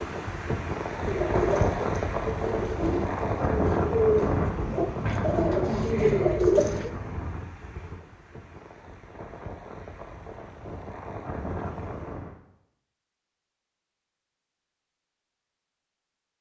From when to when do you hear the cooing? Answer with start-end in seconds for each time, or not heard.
1.0-6.9.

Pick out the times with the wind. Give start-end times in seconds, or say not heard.
0.0-12.4.